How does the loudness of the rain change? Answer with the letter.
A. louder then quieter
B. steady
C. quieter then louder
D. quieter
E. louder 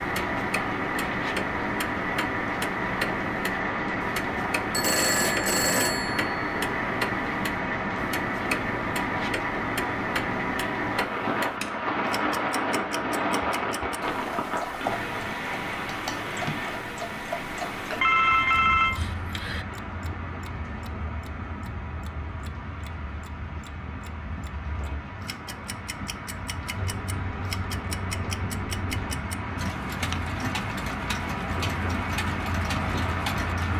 C.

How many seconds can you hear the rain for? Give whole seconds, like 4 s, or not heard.
34 s.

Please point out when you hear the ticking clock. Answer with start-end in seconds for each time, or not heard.
0.0-33.7.